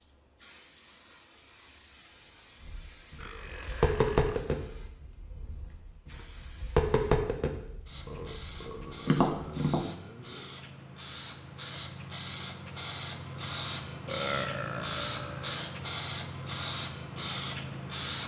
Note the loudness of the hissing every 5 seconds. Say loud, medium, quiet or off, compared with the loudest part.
quiet, quiet, loud, loud.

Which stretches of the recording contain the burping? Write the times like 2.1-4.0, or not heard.
3.1-4.3, 8.1-10.6, 14.1-15.6.